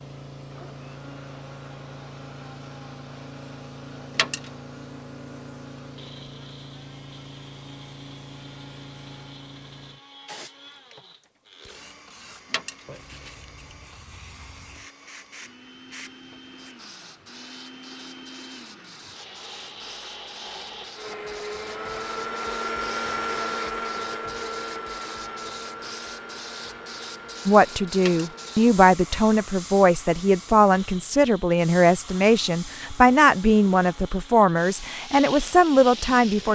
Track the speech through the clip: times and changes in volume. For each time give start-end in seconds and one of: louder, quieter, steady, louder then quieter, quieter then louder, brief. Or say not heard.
27.4-36.5 steady.